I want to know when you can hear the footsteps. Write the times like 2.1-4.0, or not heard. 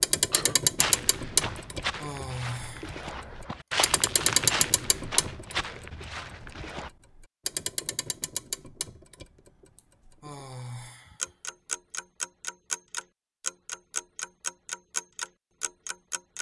0.8-6.9.